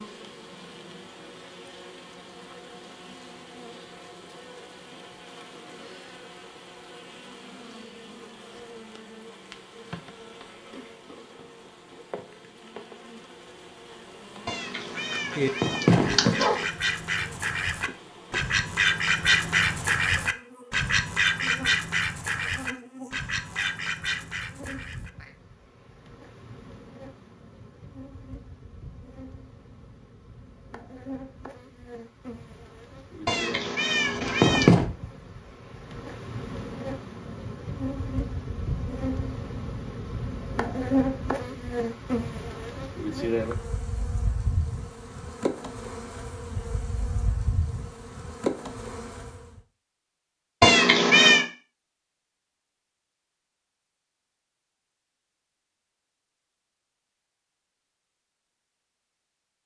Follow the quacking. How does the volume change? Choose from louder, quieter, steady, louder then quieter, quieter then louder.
louder then quieter.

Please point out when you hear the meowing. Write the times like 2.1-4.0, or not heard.
14.4-16.6, 33.2-34.9, 50.6-51.5.